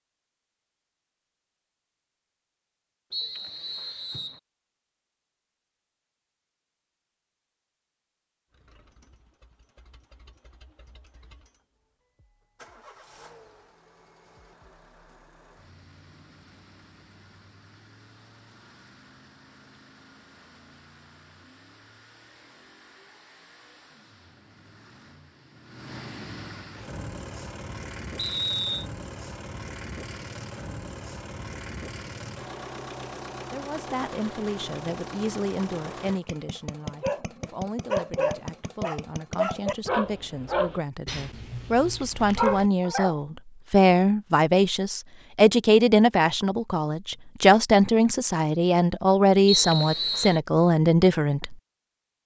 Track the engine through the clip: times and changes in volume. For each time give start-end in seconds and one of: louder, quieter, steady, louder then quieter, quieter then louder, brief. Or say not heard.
8.5-40.0 louder.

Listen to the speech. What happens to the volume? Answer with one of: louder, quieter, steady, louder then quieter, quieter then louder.
louder.